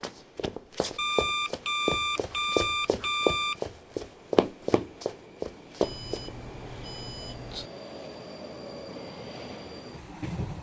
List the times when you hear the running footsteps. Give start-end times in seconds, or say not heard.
0.0-6.3.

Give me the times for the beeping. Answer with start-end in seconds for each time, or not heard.
0.9-3.5, 5.8-7.7.